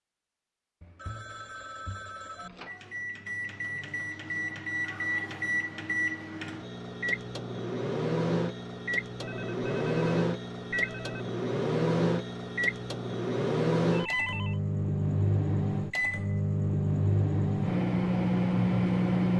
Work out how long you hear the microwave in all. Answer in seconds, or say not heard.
17 s.